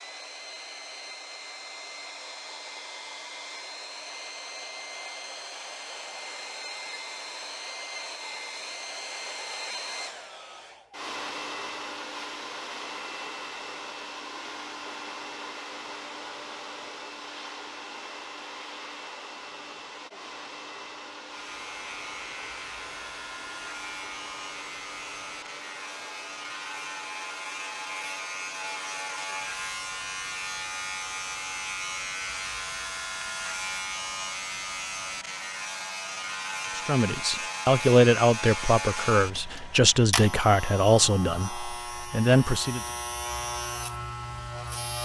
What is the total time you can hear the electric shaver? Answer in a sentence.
The electric shaver can be heard for 24 seconds in total.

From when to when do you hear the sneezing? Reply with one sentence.
You can't hear the sneezing here.